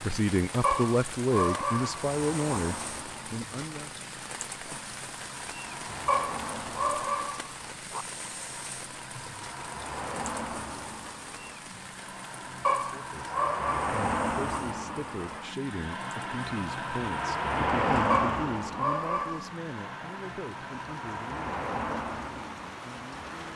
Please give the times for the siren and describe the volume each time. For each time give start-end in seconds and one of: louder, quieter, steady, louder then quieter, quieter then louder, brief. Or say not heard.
not heard.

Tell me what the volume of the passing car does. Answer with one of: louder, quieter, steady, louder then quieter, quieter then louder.
louder then quieter.